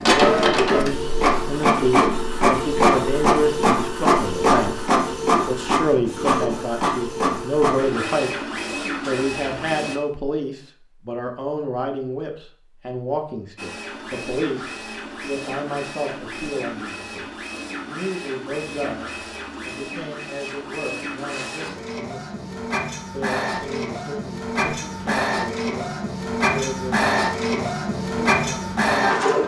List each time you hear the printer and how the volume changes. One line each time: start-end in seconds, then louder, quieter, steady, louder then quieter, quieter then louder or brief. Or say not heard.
0.0-10.0 quieter
13.6-29.4 louder.